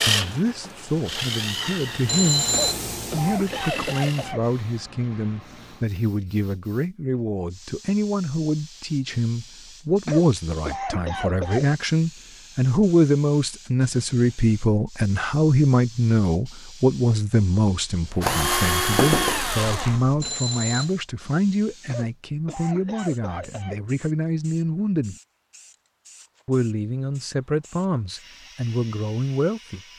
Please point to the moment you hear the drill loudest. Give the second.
19 s.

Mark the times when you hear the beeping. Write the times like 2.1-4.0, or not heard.
2.0-2.9, 20.2-20.9.